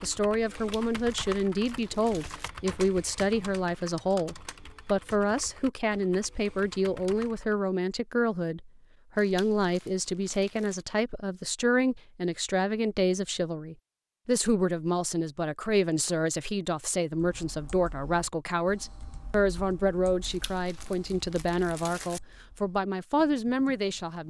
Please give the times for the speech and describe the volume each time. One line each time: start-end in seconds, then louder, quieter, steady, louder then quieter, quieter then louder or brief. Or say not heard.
0.0-24.2 steady.